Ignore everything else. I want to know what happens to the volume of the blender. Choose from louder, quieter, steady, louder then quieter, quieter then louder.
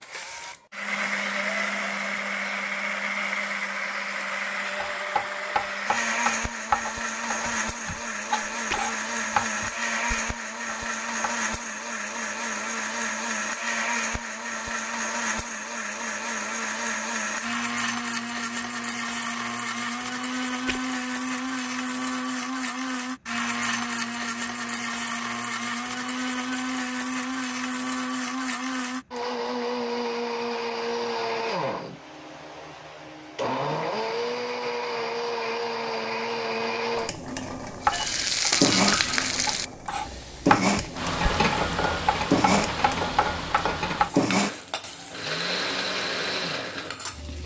steady.